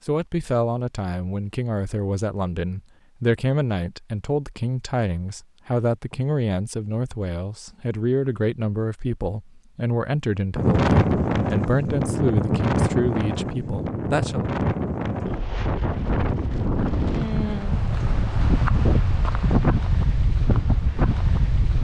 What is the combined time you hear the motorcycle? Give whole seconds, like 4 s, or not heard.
not heard.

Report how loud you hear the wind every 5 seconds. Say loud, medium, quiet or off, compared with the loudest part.
off, off, loud, loud, loud.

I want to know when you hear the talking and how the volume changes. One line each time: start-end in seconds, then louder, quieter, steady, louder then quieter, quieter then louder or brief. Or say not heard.
0.1-14.4 steady.